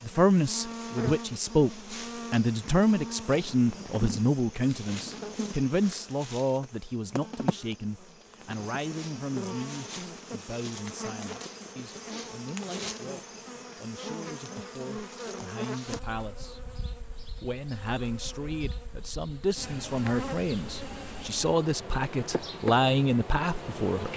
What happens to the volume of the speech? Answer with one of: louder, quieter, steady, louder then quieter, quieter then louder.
quieter then louder.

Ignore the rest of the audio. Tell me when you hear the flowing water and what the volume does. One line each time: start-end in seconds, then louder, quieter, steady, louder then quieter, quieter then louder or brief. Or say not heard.
not heard.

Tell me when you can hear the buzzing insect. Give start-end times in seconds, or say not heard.
0.0-24.1.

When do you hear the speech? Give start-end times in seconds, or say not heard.
0.0-16.6, 17.4-24.1.